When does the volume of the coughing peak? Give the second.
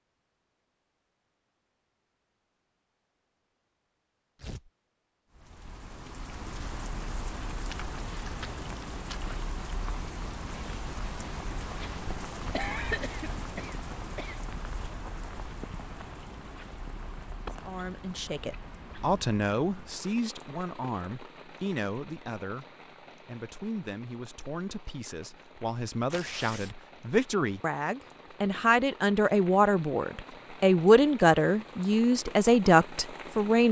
13 s.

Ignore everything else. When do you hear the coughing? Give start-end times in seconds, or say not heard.
12.5-14.4.